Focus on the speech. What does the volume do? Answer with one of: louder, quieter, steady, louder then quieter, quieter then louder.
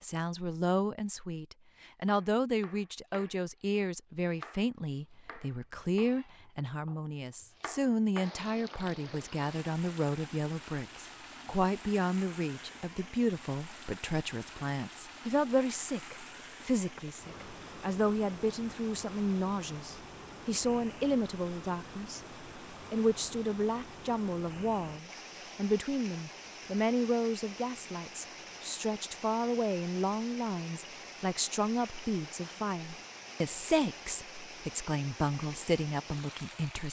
steady.